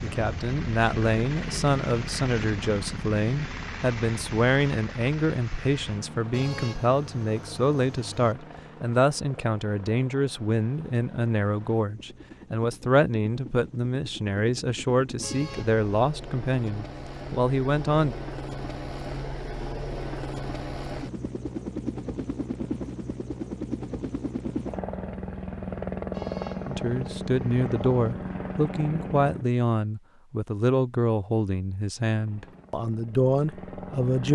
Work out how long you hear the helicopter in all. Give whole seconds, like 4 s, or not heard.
32 s.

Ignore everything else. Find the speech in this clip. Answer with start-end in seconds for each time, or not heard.
0.0-18.1, 26.6-34.3.